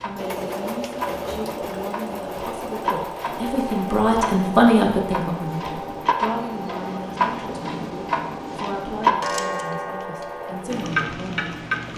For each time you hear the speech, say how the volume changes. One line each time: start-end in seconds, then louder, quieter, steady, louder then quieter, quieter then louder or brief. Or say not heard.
0.0-11.9 louder then quieter.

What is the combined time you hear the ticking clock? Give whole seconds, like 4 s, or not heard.
12 s.